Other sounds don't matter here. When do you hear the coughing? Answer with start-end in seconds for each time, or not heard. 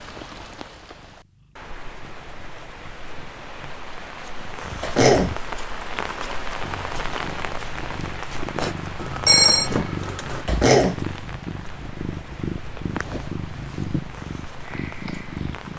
4.8-5.3, 10.4-11.0.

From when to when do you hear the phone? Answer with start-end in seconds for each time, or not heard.
9.0-10.4.